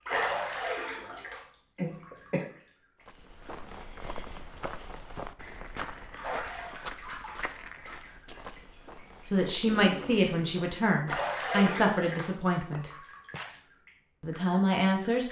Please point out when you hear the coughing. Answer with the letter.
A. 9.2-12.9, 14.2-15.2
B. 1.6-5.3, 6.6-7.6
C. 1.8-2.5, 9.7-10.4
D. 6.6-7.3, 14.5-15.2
C.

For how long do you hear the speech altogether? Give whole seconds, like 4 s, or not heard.
5 s.